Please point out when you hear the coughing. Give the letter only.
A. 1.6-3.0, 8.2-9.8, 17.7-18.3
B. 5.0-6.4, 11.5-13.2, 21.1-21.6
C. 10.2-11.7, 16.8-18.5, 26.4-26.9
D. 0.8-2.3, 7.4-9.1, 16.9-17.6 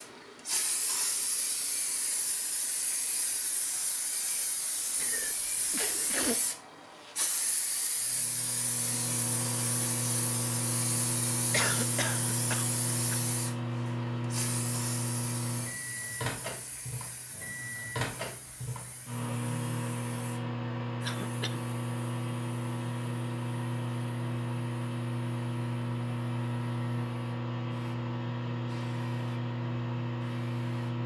B.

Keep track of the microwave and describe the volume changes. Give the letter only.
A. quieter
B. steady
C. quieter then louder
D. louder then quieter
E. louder
B.